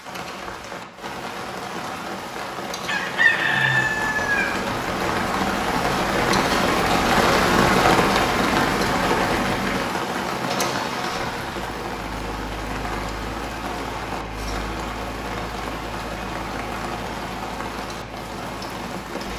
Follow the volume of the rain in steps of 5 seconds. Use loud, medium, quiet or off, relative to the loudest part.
medium, loud, medium, medium.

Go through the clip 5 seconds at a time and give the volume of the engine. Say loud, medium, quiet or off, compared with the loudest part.
medium, loud, medium, medium.